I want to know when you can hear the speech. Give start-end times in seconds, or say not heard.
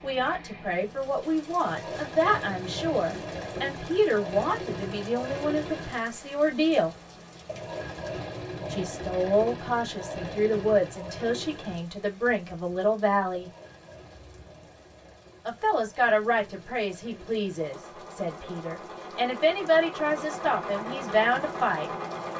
0.0-7.0, 8.7-13.5, 15.4-21.9.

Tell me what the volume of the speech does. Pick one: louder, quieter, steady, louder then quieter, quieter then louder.
steady.